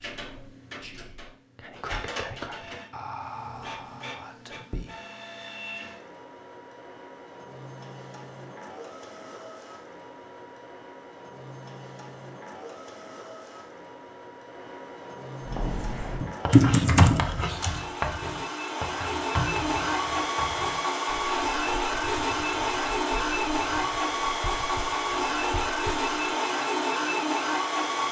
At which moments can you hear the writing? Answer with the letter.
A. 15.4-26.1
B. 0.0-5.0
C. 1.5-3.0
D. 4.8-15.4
A.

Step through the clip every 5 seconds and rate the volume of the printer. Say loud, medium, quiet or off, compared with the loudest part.
quiet, quiet, quiet, medium, loud, loud.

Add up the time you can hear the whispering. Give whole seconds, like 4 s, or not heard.
5 s.